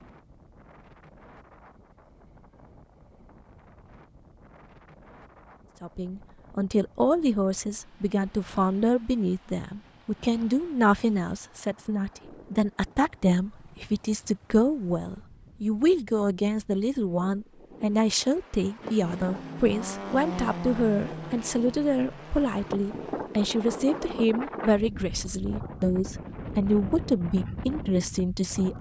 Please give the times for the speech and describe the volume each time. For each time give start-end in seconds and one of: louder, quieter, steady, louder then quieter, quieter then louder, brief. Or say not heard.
5.8-28.7 steady.